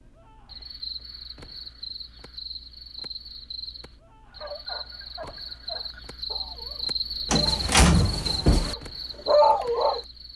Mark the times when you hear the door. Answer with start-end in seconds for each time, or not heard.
7.3-8.8.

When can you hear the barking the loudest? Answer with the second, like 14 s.
9 s.